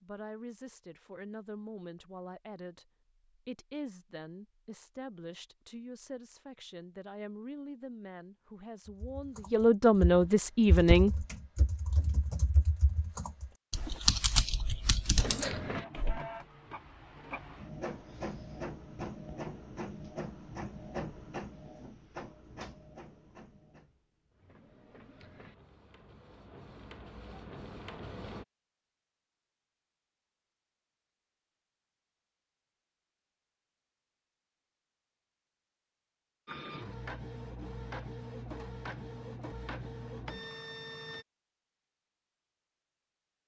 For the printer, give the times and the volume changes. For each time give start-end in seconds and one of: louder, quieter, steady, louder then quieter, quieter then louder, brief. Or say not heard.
15.2-28.4 quieter then louder
36.5-41.2 steady.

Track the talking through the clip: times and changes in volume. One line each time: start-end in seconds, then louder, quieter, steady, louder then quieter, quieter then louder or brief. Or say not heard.
0.0-11.2 louder.